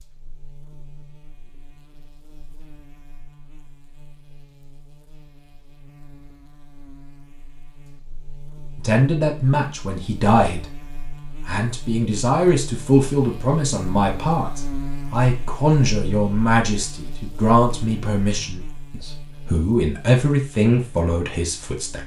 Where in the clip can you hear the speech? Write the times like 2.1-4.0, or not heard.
8.8-22.0.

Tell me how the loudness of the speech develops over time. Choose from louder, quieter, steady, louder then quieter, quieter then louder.
steady.